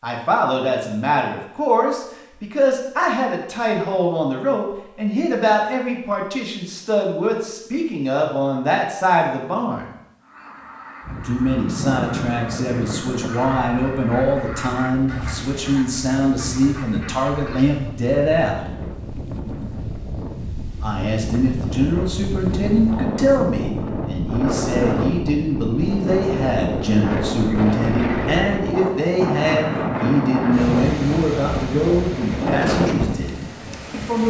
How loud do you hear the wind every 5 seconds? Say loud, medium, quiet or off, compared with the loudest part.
off, off, medium, medium, loud, loud, loud.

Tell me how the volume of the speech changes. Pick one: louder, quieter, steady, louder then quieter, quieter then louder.
steady.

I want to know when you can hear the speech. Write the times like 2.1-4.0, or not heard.
0.0-9.8, 11.2-18.6, 20.8-34.2.